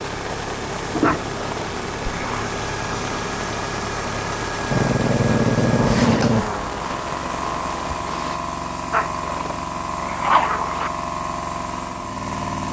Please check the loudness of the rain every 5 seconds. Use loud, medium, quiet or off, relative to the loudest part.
loud, loud, off.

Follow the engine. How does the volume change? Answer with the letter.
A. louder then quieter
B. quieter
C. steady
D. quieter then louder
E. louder
C.